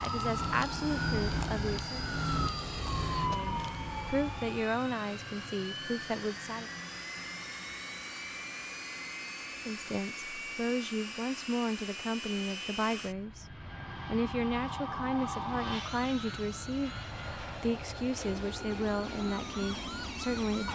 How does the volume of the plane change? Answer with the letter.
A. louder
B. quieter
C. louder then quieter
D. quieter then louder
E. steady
E.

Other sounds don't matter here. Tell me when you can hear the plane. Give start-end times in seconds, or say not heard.
0.0-20.7.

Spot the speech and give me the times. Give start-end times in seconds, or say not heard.
0.0-2.0, 3.2-6.7, 9.6-20.7.